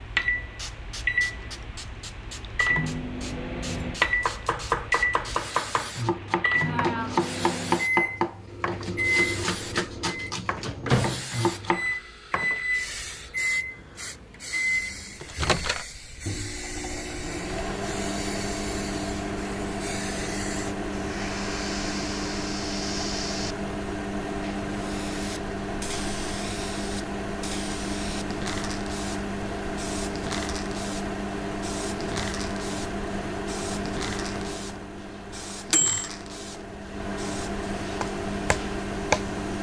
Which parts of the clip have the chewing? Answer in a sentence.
The chewing can't be heard in this clip.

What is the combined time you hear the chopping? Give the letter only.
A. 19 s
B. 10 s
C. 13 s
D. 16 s
B.